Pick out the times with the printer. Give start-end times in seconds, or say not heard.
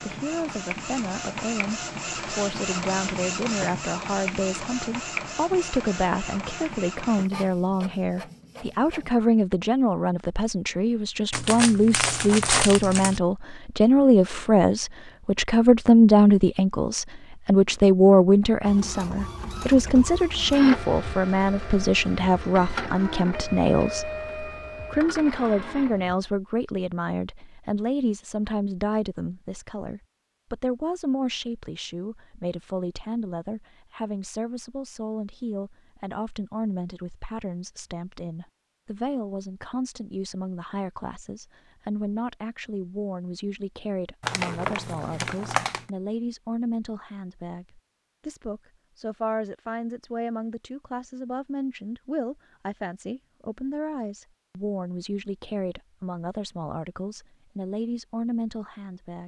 0.0-9.1, 18.6-26.1.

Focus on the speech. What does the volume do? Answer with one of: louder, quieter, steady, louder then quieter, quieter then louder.
louder then quieter.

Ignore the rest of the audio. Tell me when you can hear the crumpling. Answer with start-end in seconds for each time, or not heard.
11.3-13.2, 44.2-45.9.